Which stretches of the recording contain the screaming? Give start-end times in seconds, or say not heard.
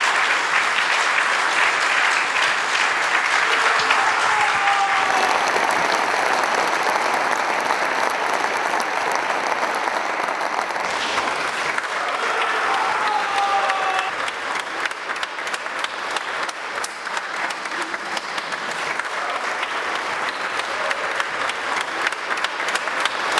3.4-5.3, 12.2-14.1.